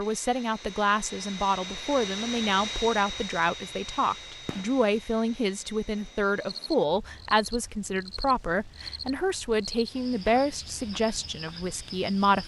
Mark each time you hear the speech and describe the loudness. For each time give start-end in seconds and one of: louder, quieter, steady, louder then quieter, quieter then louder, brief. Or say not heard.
0.0-12.4 steady.